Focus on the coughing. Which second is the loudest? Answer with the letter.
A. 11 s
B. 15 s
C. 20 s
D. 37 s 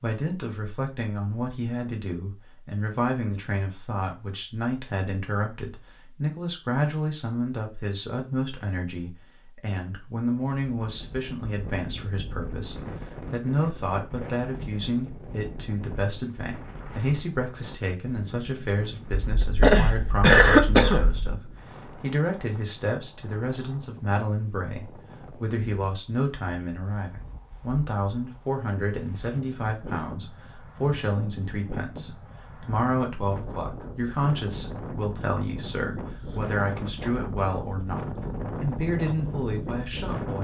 C.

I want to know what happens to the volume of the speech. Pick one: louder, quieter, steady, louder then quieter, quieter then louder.
steady.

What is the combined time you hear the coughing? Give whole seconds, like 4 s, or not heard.
2 s.